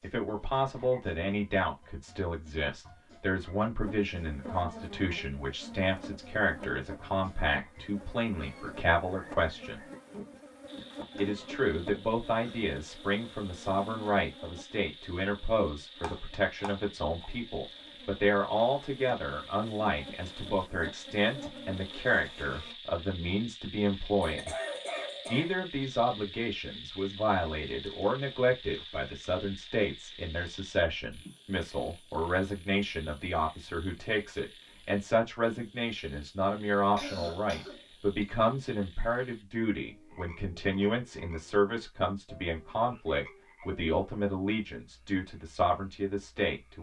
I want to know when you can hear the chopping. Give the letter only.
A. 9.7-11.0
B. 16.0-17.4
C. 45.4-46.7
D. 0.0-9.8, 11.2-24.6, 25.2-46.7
B.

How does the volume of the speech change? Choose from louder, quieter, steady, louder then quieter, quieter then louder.
steady.